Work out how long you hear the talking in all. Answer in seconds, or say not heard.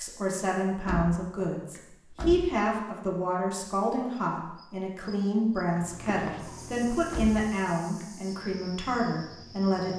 10 s.